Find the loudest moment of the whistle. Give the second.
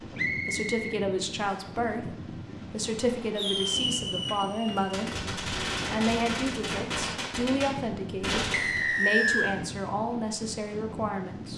9 s.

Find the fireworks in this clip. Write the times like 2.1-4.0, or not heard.
3.4-8.8.